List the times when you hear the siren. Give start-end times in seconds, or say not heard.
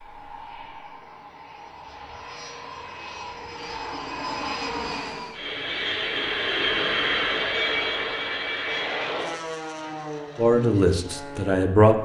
not heard.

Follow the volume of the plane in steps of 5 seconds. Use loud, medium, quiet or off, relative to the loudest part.
medium, loud, medium.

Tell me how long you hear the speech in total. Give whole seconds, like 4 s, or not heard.
2 s.